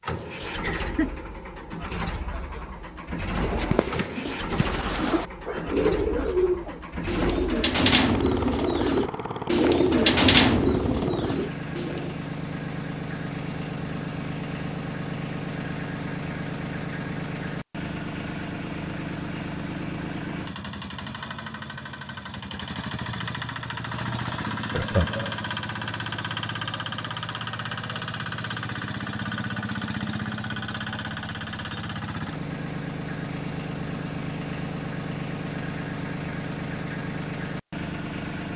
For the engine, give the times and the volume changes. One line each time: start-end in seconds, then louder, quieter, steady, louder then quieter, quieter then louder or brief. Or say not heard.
0.0-38.5 steady.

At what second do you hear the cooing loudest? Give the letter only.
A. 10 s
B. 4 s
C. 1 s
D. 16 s
A.